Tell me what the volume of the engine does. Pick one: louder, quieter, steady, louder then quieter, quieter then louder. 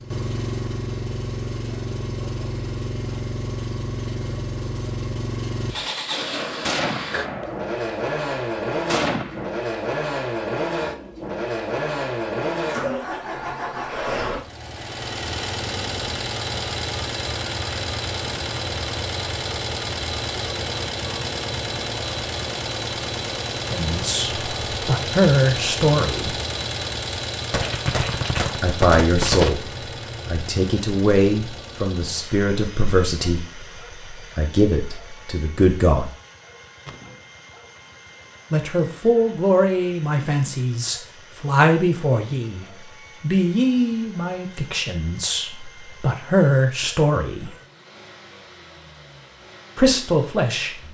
quieter.